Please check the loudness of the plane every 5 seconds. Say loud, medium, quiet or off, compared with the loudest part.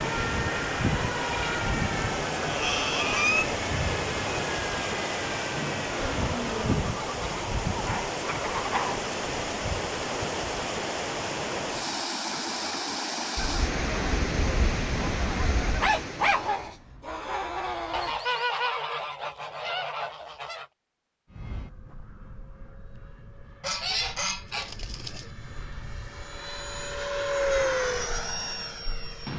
loud, loud, off, off, quiet, loud.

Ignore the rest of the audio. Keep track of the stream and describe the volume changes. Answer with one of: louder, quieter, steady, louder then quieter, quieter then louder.
steady.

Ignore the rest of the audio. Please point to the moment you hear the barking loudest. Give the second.
16 s.